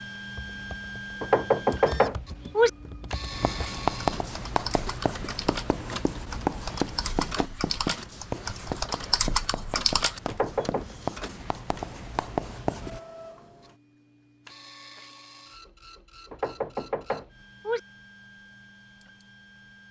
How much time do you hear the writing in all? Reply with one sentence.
You can hear the writing for 10 seconds altogether.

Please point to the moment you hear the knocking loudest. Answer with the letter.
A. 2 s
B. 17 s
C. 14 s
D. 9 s
A.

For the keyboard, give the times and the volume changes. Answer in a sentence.
You can hear the keyboard from 0.3 to 10.3 s, getting louder.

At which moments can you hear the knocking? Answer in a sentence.
You can hear the knocking from 1.2 to 2.7 s, from 10.2 to 10.8 s and from 16.3 to 17.8 s.